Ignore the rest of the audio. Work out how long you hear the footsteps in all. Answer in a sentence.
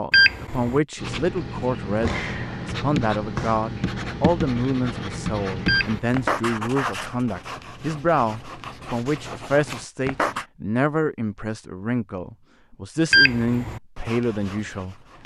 You can't hear the footsteps here.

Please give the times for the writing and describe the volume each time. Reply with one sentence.
The writing can be heard from 0.9 to 10.4 s, getting quieter; and briefly from 13.7 to 15.2 s.